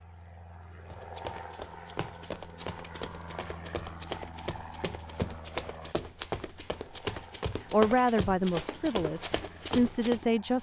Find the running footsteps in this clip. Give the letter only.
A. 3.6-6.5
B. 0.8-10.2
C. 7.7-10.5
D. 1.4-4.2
B.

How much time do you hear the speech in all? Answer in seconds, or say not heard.
3 s.